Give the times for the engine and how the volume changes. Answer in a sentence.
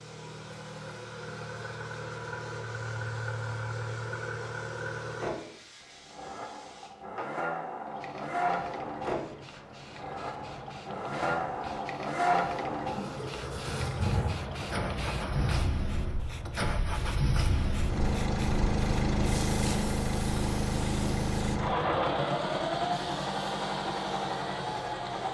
The engine can be heard from 0.0 to 25.2 s, getting louder.